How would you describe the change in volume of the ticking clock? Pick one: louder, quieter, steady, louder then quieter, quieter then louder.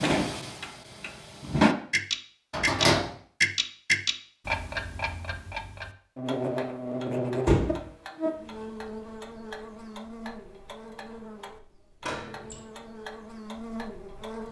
quieter.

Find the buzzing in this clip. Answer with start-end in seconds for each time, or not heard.
6.2-14.4.